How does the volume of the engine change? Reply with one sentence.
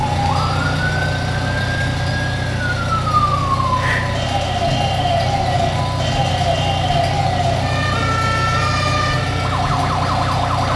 The loudness of the engine stays about the same.